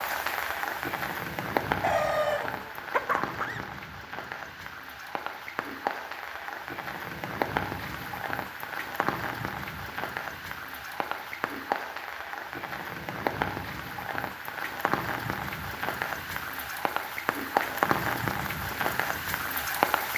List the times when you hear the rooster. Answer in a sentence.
The rooster can be heard from 1.8 to 3.6 s.